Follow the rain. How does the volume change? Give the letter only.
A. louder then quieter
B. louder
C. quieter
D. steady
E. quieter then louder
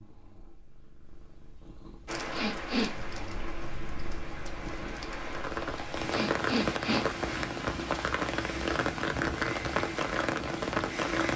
B.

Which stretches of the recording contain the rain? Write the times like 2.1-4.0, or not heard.
2.0-11.3.